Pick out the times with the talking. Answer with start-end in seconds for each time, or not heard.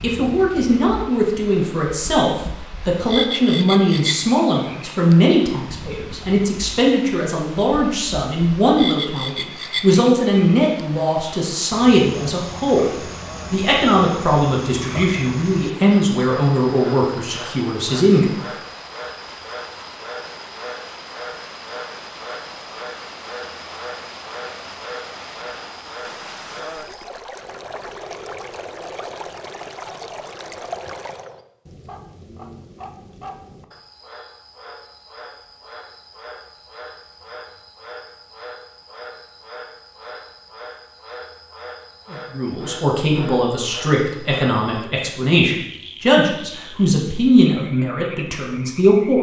0.0-18.2, 42.1-49.1.